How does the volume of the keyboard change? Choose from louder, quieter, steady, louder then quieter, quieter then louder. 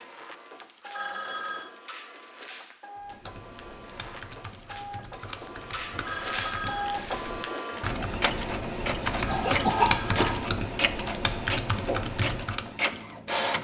louder.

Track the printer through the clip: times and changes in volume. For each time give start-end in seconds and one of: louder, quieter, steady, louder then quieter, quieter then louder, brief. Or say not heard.
0.0-13.6 louder.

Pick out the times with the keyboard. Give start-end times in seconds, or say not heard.
3.0-12.7.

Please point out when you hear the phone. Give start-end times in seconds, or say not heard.
0.9-1.7, 6.0-7.0, 9.2-10.3.